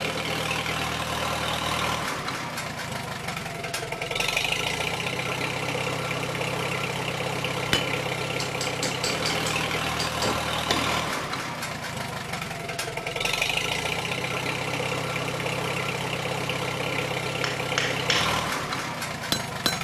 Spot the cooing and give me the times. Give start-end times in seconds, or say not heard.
not heard.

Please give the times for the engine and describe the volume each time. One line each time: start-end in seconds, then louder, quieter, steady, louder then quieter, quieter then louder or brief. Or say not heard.
0.0-19.7 steady.